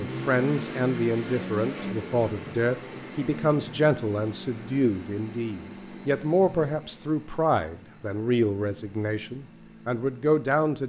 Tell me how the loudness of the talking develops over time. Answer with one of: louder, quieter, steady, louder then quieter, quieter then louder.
steady.